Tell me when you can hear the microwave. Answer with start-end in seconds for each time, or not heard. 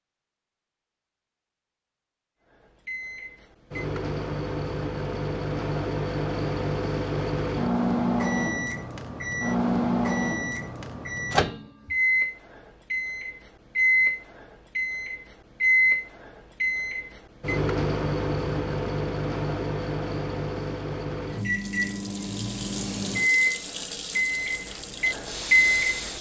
2.9-26.1.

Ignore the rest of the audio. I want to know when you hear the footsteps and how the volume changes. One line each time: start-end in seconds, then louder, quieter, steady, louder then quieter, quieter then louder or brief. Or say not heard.
not heard.